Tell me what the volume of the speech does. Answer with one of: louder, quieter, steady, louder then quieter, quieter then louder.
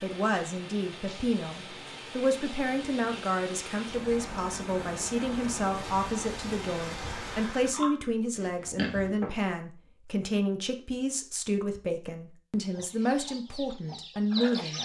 steady.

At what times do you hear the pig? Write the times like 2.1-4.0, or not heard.
7.3-9.3.